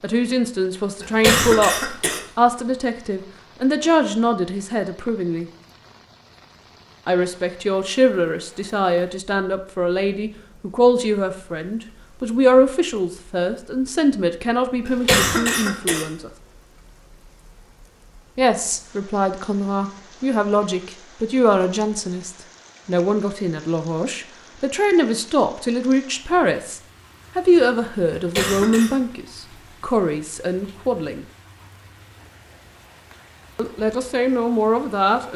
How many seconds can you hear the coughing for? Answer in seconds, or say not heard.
3 s.